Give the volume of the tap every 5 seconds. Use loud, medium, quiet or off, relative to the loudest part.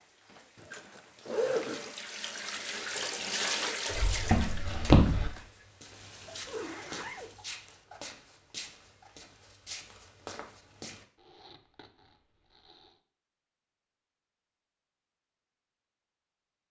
loud, quiet, off, off.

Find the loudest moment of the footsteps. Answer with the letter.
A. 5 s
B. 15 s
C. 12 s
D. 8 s
A.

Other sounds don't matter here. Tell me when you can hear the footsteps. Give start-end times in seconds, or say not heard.
3.9-11.1.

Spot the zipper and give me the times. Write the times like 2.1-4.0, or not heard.
0.6-1.9, 6.5-7.4, 11.2-12.9.